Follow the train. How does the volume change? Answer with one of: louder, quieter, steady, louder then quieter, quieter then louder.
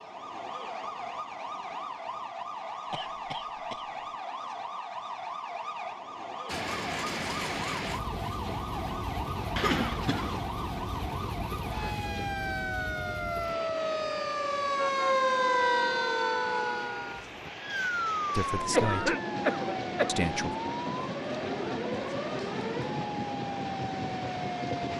quieter then louder.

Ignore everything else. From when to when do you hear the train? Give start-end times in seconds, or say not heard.
6.5-24.9.